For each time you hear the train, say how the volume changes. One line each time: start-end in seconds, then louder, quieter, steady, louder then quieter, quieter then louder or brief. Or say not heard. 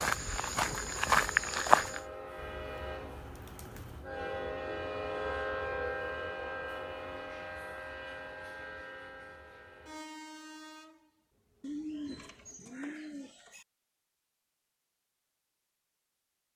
0.0-12.8 louder then quieter.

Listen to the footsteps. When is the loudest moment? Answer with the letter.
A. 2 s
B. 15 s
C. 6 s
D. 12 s
A.